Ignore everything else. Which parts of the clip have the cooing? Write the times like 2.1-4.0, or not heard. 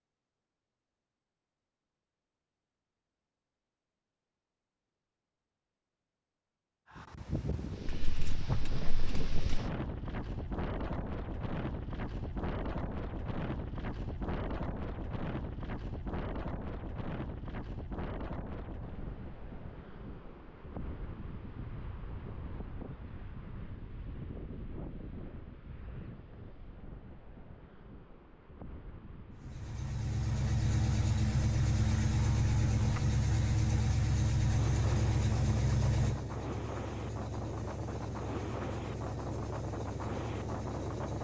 not heard.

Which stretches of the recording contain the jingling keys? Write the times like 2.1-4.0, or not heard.
7.8-9.6.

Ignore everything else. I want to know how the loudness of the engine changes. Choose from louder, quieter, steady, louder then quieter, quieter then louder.
quieter.